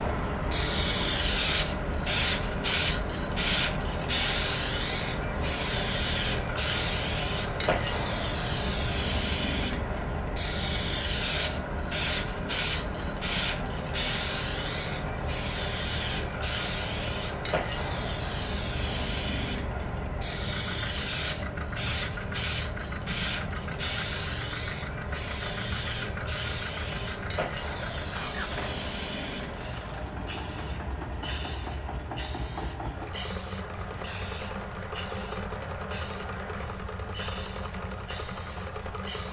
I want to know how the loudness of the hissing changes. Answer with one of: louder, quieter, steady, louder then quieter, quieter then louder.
quieter.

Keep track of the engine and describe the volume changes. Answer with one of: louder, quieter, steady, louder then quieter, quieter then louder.
steady.